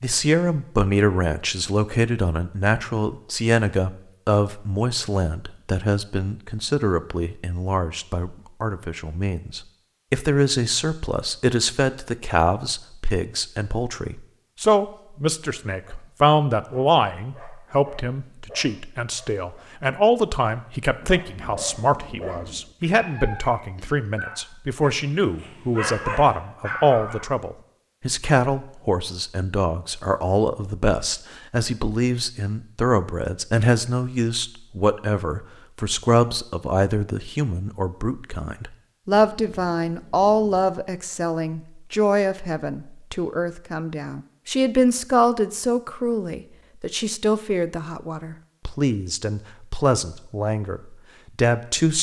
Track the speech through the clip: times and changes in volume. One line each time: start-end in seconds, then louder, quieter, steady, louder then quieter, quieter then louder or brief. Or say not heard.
0.0-51.9 steady.